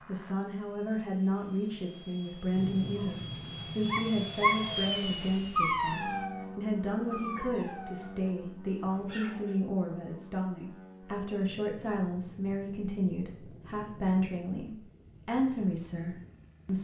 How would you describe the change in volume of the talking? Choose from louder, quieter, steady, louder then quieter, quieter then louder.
steady.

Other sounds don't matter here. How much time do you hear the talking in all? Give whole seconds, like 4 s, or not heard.
17 s.